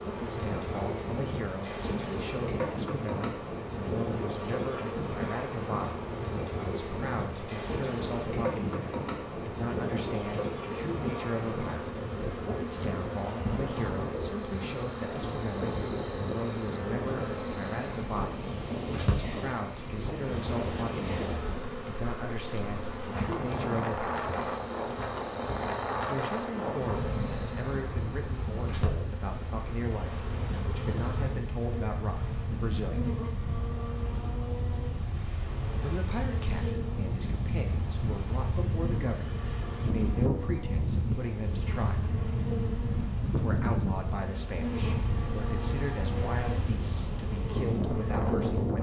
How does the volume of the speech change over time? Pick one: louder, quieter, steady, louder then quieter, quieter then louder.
steady.